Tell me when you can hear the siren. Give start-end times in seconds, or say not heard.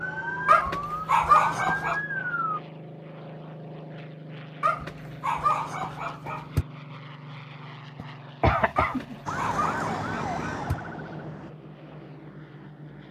0.0-2.6, 9.2-11.5.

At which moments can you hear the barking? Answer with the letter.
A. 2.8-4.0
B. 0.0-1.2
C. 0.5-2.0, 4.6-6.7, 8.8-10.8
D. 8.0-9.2
C.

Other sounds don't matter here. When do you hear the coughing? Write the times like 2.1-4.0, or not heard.
8.0-9.2.